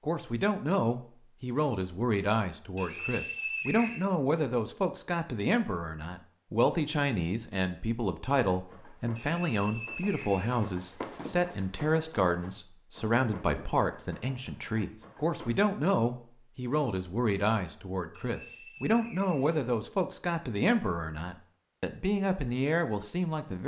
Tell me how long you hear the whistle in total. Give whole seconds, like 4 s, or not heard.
5 s.